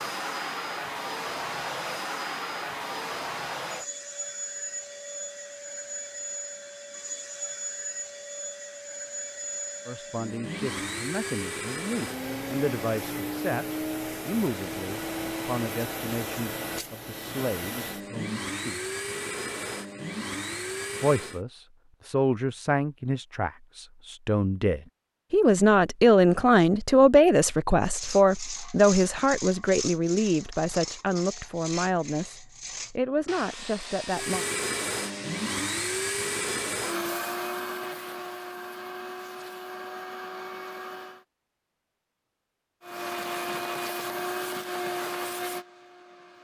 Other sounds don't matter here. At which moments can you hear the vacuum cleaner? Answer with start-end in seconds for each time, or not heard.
0.0-21.4, 34.0-41.2, 42.8-46.3.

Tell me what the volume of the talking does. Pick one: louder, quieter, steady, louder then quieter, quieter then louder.
louder then quieter.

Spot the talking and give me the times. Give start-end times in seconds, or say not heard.
9.8-18.9, 21.0-34.5.